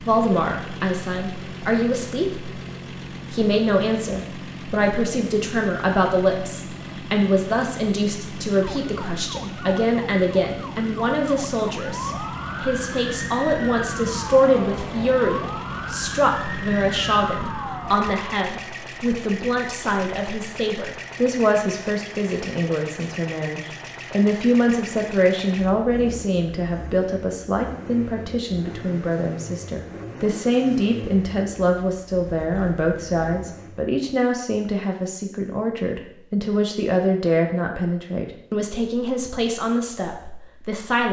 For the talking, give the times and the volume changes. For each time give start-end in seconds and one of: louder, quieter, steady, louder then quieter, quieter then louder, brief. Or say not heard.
0.1-2.5 brief
3.3-41.0 steady.